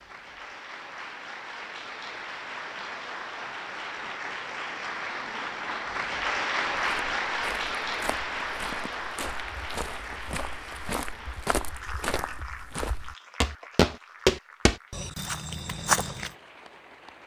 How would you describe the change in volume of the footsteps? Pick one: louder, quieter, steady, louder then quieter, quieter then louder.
louder.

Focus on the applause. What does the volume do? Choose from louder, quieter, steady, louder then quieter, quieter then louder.
louder then quieter.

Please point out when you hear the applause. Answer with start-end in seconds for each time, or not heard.
0.0-17.2.